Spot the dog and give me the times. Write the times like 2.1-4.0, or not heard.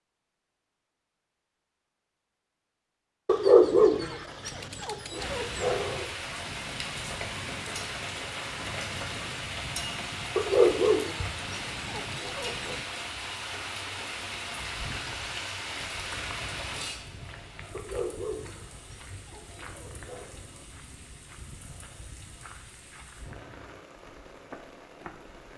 3.2-6.0, 10.3-12.8, 17.7-20.4.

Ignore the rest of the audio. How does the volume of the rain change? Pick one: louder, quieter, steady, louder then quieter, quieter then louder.
quieter.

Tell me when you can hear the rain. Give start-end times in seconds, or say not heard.
5.1-25.5.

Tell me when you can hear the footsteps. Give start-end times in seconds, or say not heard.
14.3-25.4.